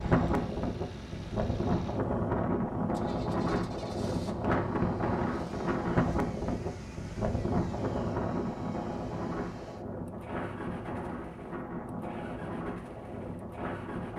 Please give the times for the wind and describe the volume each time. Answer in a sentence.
You can hear the wind from 0.0 to 14.1 s, getting quieter.